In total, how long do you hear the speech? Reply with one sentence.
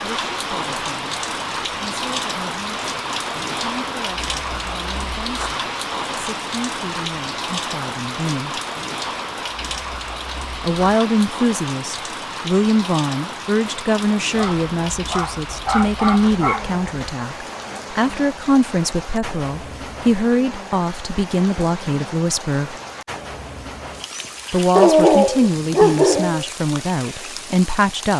The speech can be heard for 24 seconds in total.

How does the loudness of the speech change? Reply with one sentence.
The volume of the speech goes up.